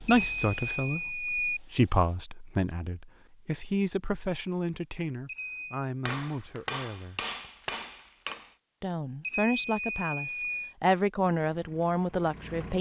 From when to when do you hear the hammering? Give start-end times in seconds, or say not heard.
6.0-8.6.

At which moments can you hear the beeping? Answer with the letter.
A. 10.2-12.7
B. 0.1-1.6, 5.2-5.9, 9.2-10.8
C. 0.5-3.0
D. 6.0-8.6
B.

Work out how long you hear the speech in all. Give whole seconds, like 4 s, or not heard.
11 s.